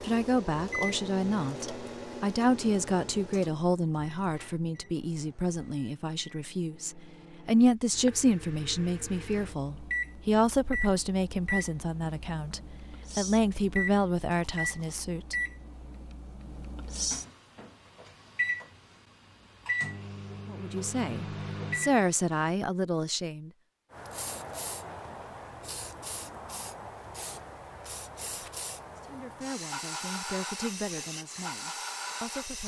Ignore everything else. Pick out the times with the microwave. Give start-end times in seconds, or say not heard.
0.0-22.5.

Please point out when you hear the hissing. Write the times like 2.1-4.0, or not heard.
23.9-32.6.